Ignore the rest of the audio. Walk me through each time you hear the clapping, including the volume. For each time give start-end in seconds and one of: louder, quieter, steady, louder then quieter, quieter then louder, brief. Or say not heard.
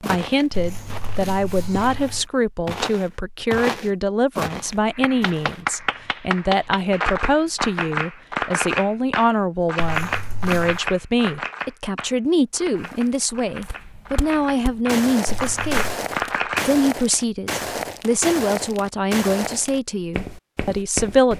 4.9-16.8 quieter then louder.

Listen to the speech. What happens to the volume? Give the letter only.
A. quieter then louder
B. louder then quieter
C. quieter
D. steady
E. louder
D.